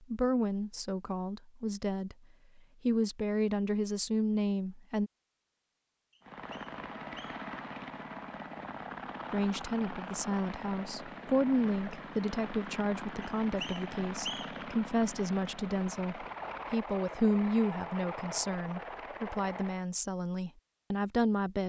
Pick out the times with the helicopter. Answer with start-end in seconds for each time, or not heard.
6.2-19.9.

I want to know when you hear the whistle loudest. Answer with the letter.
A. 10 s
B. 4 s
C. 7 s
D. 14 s
D.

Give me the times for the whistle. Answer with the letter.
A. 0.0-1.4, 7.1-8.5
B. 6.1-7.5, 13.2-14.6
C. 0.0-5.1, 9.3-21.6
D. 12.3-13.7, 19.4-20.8
B.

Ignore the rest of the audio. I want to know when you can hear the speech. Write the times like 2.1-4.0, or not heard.
0.0-5.1, 9.3-21.6.